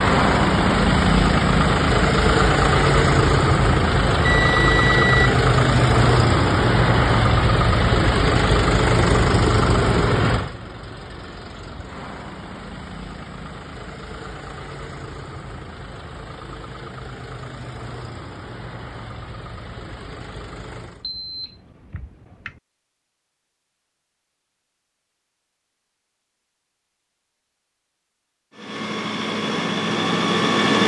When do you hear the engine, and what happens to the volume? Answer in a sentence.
You can hear the engine from 0.0 to 21.1 s, getting quieter; and briefly from 28.5 to 30.8 s.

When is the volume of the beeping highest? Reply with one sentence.
The volume of the beeping peaks at 5 seconds.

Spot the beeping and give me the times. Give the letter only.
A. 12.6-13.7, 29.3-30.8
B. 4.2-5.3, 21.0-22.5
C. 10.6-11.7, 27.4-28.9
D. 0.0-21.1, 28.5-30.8
B.